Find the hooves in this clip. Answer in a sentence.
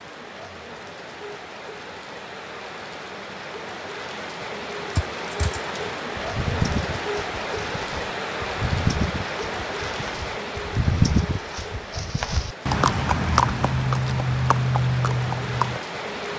You can hear the hooves from 5.0 to 15.8 s.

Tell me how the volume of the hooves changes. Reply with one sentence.
The volume of the hooves goes up.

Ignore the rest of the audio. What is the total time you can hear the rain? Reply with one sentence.
The rain can be heard for 16 seconds in total.